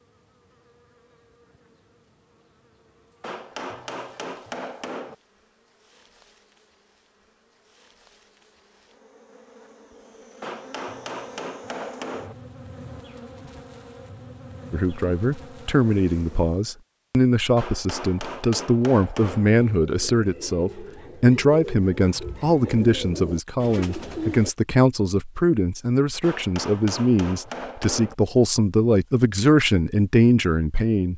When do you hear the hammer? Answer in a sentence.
The hammer can be heard from 3.2 to 5.2 s, from 10.4 to 12.3 s, from 17.6 to 19.5 s and from 26.2 to 28.1 s.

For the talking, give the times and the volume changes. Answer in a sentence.
You can hear the talking from 14.7 to 31.1 s, at a steady volume.